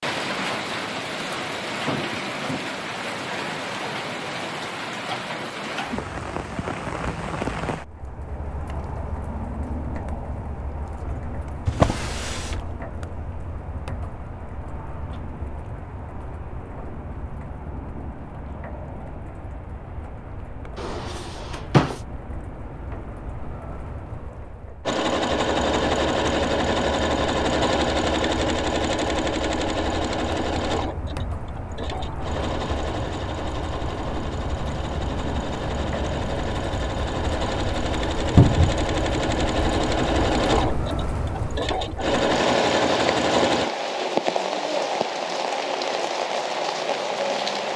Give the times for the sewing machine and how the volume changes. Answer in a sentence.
The sewing machine can be heard from 24.9 to 43.7 s, getting quieter then louder.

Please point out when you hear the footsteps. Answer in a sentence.
The footsteps can't be heard in this clip.